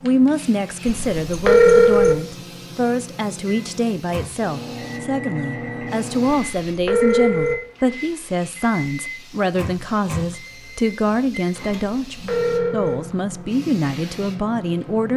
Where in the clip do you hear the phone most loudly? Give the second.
2 s.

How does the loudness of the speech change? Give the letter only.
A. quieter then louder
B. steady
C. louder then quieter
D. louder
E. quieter
B.